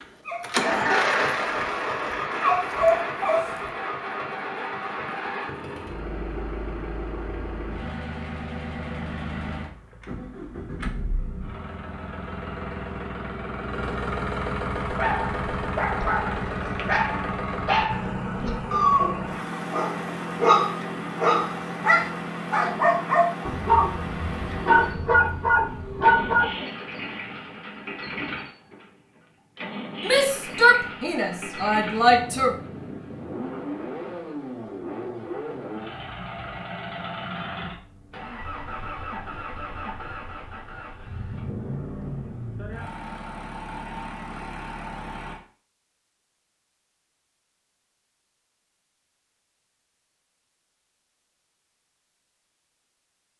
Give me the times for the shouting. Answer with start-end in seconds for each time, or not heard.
30.0-32.5.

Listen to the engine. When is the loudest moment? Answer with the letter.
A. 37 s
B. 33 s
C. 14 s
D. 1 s
D.